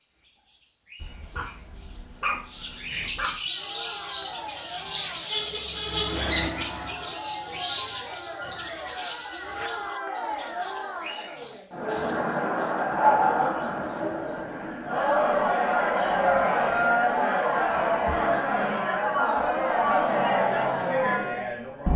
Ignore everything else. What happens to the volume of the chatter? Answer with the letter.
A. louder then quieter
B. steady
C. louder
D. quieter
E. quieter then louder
C.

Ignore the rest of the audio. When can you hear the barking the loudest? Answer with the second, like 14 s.
13 s.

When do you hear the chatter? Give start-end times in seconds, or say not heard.
3.4-21.9.